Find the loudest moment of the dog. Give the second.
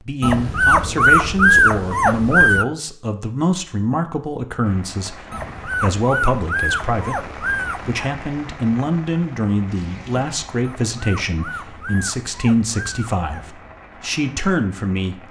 2 s.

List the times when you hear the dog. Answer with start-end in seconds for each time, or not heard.
0.2-2.6, 5.3-8.0, 10.6-13.6.